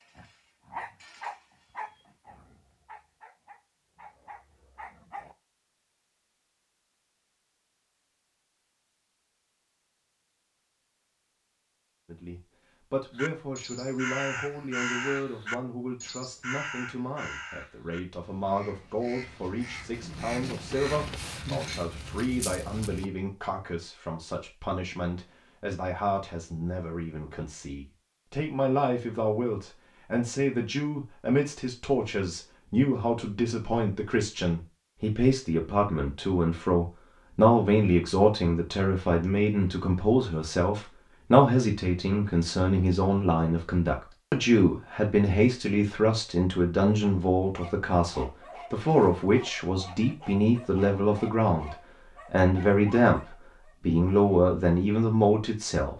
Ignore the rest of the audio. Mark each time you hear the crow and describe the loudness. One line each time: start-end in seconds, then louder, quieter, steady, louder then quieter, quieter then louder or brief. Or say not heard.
13.2-23.1 quieter then louder.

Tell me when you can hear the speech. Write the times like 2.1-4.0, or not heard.
12.1-55.9.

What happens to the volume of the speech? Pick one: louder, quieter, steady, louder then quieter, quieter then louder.
louder.